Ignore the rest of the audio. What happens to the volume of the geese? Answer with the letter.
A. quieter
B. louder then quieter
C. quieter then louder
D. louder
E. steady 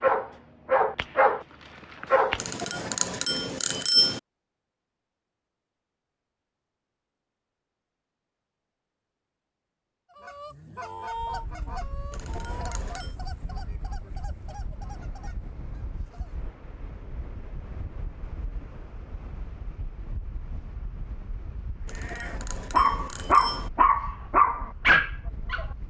A.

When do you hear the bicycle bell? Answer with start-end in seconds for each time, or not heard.
2.4-4.2, 12.1-13.2, 21.9-23.7.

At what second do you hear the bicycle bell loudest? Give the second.
4 s.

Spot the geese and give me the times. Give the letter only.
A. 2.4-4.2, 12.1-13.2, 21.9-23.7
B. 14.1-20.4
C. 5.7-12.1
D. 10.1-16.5
D.